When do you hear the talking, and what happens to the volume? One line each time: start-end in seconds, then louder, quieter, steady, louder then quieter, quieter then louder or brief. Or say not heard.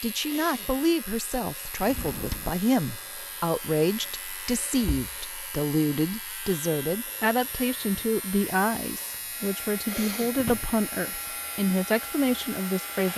0.0-13.1 steady.